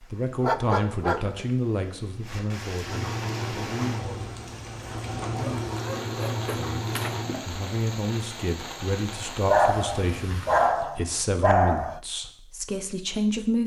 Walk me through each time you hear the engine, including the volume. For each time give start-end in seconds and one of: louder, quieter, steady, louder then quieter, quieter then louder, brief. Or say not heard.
2.9-7.5 quieter then louder.